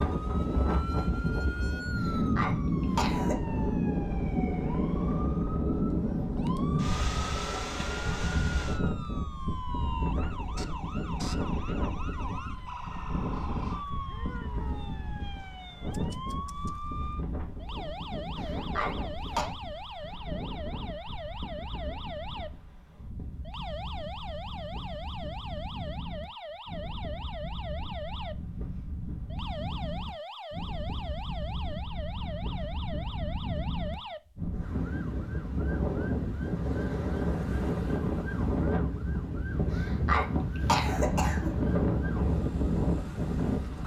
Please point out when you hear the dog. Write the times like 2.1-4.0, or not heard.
not heard.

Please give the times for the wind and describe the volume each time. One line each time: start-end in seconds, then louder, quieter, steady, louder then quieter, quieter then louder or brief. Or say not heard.
0.0-43.8 quieter then louder.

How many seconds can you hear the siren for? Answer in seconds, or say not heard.
44 s.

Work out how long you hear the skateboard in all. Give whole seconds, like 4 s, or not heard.
not heard.